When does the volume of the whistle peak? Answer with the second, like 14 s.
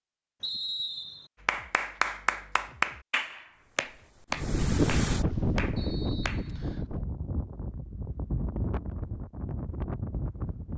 1 s.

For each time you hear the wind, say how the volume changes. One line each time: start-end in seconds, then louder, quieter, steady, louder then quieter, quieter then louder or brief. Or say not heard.
3.9-10.7 quieter.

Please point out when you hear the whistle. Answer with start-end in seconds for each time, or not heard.
0.4-1.3, 5.8-6.9.